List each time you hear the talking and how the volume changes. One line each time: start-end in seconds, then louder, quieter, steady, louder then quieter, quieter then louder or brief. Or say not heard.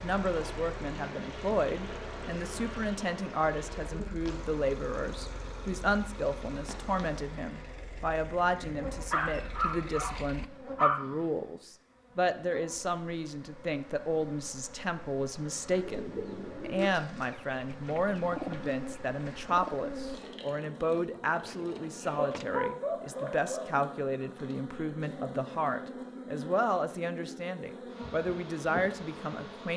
0.0-29.7 steady.